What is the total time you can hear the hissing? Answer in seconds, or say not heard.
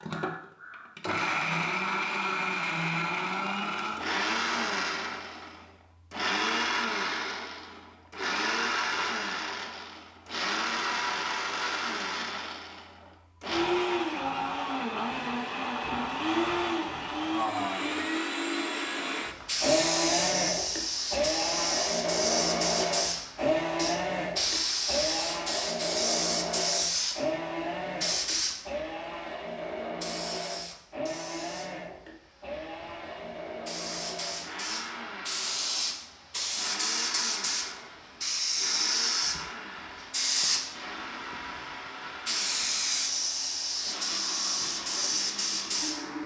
27 s.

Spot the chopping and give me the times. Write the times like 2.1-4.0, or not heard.
not heard.